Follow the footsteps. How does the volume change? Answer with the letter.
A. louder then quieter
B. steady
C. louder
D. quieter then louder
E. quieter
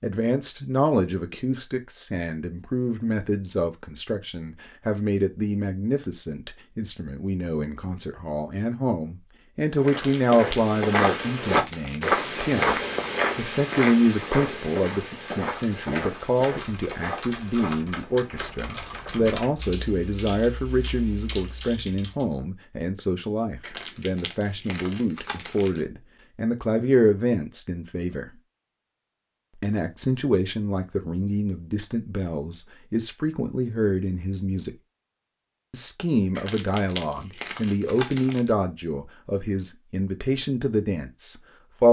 E.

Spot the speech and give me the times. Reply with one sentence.
You can hear the speech from 0.0 to 28.3 s, from 29.6 to 34.7 s and from 35.7 to 41.8 s.